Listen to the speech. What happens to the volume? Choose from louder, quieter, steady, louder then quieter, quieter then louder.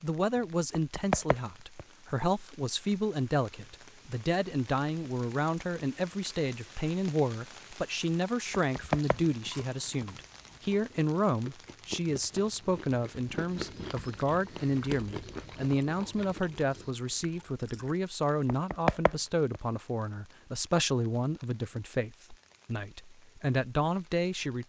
steady.